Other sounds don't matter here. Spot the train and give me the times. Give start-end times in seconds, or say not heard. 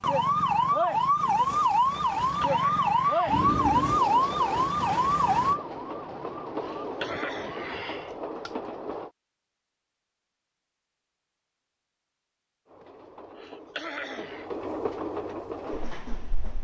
3.2-9.1, 12.7-16.6.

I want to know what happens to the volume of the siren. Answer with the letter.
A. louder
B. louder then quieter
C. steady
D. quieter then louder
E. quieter
E.